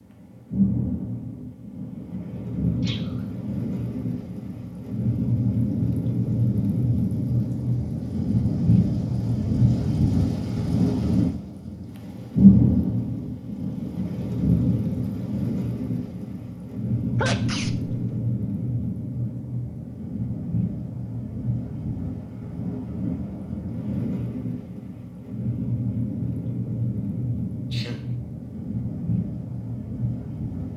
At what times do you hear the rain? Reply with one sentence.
You can hear the rain from 0.0 to 30.7 s.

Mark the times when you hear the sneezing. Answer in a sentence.
The sneezing can be heard from 2.8 to 3.2 s, from 17.1 to 18.1 s and from 27.7 to 28.1 s.